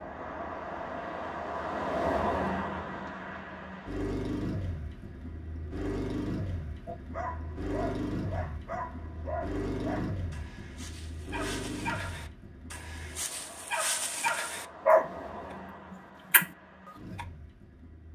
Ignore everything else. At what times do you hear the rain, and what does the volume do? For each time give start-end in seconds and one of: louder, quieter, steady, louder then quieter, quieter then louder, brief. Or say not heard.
not heard.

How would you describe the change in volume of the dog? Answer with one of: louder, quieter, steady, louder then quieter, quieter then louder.
louder.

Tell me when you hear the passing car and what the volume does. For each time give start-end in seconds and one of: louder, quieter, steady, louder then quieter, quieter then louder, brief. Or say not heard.
0.0-18.1 quieter.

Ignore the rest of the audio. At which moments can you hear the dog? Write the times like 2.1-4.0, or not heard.
6.8-17.2.